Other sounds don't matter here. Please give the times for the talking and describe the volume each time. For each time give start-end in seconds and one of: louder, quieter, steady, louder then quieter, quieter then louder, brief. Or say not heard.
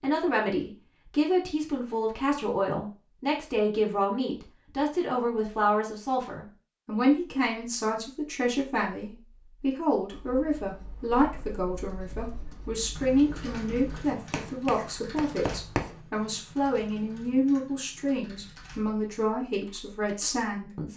0.0-20.9 steady.